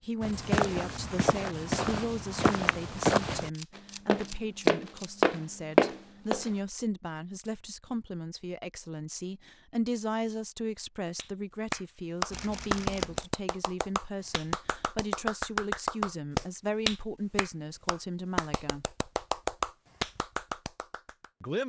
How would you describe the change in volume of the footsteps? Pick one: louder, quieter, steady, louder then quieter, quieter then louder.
louder.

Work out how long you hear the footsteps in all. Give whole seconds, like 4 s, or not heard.
6 s.